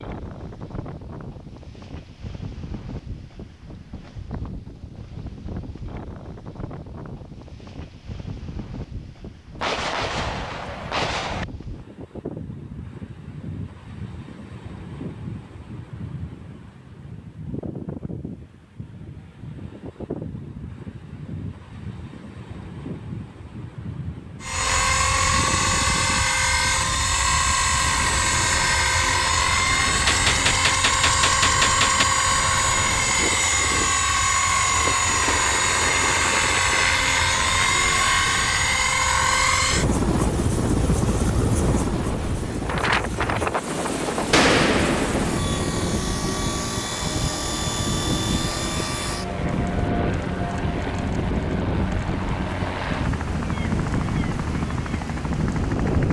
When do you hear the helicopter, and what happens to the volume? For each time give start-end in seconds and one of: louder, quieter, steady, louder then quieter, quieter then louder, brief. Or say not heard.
24.4-56.0 quieter.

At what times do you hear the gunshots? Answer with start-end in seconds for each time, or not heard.
9.6-11.4, 30.1-32.0, 44.3-45.4.